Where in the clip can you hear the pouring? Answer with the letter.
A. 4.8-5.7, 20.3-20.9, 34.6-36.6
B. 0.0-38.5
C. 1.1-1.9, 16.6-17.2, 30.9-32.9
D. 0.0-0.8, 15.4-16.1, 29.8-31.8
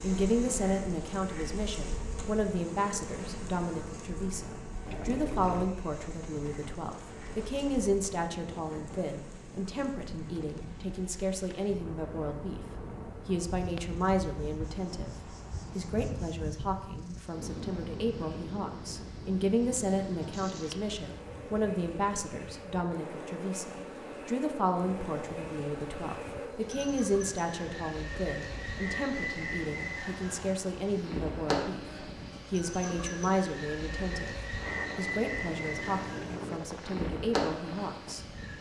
A.